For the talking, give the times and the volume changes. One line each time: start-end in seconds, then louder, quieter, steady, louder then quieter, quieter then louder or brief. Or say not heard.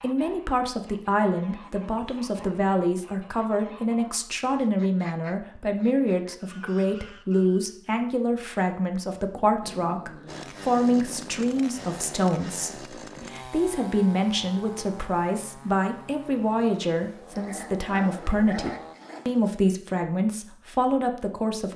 0.0-21.7 steady.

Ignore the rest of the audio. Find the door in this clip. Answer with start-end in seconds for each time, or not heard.
not heard.